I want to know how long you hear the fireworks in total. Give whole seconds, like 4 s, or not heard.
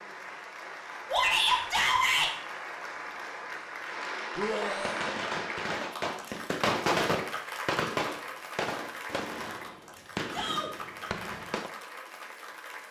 7 s.